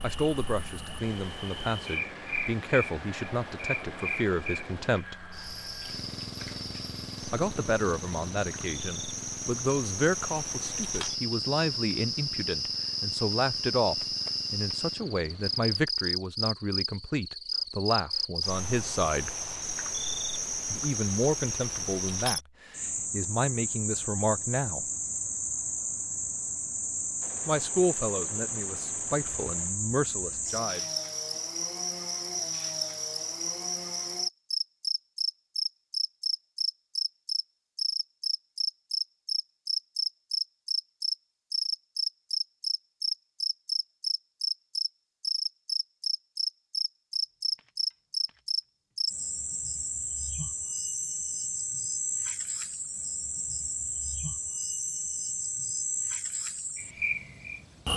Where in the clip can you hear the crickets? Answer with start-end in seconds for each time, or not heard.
0.0-57.9.